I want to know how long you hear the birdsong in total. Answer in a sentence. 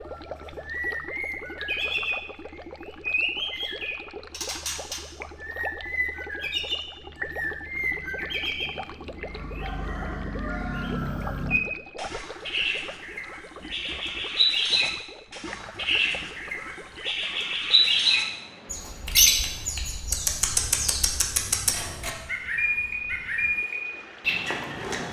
You can hear the birdsong for 25 seconds altogether.